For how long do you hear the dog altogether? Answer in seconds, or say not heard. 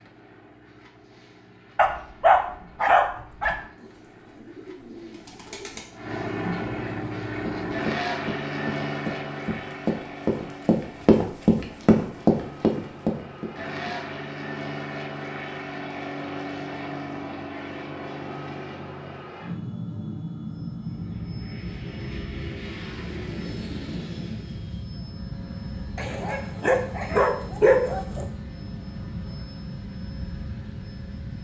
4 s.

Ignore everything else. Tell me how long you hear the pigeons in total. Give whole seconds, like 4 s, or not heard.
2 s.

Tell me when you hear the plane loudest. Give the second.
8 s.